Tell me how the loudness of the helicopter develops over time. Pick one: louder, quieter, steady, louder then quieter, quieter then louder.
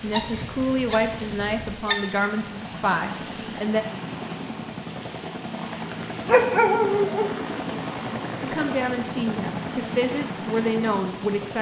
louder.